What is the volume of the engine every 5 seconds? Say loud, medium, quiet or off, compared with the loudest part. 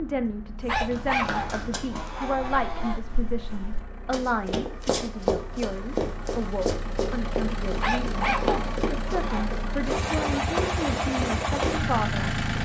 quiet, medium, loud.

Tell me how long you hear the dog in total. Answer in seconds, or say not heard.
4 s.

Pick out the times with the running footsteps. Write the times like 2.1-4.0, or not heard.
0.6-11.8.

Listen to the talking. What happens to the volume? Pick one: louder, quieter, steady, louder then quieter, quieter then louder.
steady.